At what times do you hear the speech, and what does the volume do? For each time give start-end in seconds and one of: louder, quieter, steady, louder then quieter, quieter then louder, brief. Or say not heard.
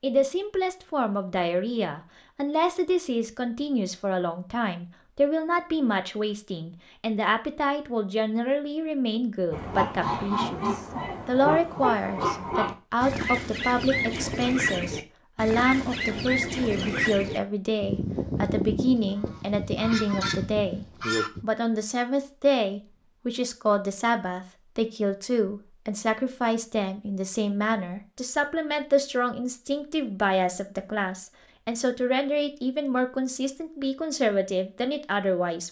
0.0-35.6 steady.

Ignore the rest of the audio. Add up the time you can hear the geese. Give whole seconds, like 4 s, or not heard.
12 s.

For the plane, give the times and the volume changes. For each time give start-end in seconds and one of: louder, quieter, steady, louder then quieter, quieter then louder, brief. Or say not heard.
not heard.